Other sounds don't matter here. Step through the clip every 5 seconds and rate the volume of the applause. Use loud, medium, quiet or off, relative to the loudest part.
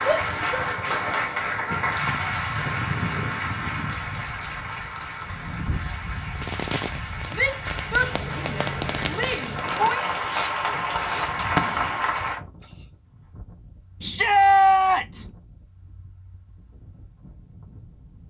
loud, medium, loud, off.